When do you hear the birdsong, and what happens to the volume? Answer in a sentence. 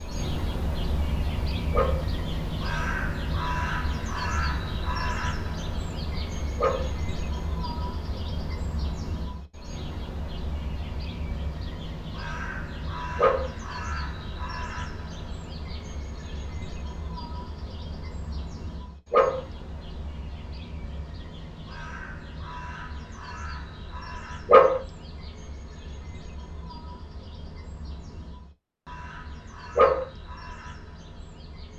The birdsong can be heard from 0.0 to 31.7 s, getting quieter.